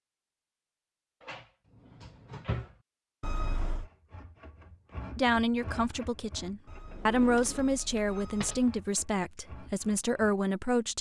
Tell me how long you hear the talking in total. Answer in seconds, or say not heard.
6 s.